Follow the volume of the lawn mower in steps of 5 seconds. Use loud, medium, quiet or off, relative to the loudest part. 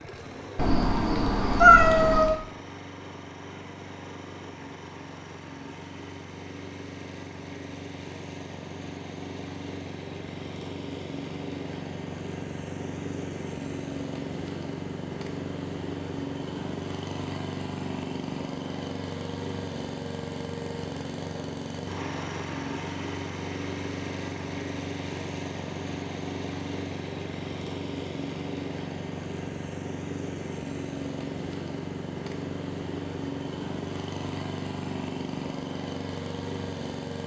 medium, medium, loud, loud, loud, loud, loud, loud.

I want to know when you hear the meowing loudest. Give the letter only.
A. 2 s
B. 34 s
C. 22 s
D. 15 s
A.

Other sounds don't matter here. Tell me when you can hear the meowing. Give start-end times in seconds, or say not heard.
0.6-2.4.